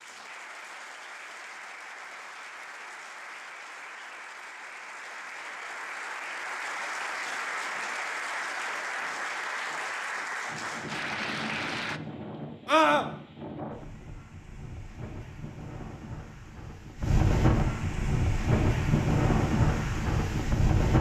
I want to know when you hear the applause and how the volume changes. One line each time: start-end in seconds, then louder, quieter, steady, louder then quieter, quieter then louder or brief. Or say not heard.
0.0-12.0 louder.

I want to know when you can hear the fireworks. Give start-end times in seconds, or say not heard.
not heard.